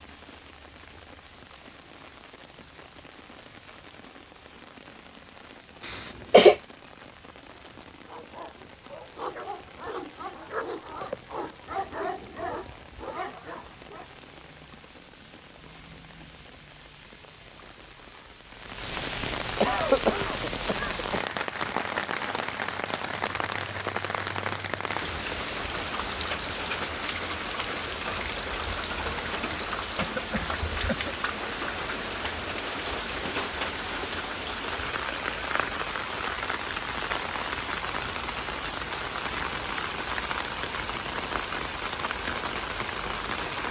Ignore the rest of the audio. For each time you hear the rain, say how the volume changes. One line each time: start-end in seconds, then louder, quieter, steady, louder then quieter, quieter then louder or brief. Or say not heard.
0.0-43.6 louder.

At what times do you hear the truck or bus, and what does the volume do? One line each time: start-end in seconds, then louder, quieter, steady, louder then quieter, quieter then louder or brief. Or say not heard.
not heard.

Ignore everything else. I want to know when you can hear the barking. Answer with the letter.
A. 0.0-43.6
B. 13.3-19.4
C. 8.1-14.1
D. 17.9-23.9
C.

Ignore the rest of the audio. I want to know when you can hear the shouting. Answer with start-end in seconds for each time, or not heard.
not heard.